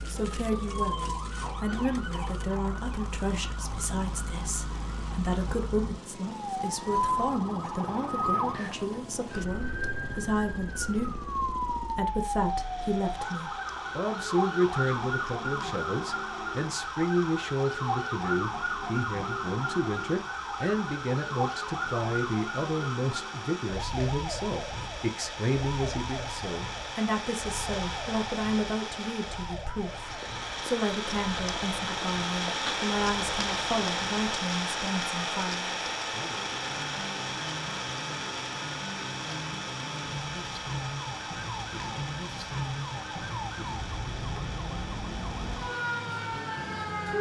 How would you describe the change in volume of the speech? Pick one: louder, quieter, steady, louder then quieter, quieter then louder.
steady.